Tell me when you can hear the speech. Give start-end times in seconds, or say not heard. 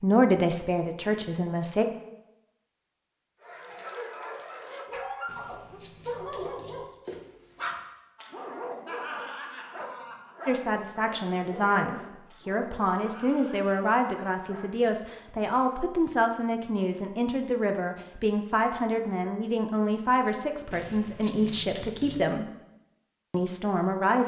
0.0-1.9, 10.4-22.5, 23.3-24.2.